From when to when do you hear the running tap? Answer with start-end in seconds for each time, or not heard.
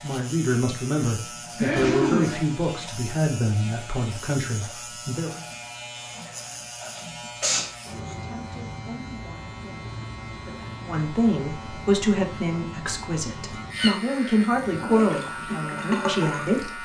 14.3-16.8.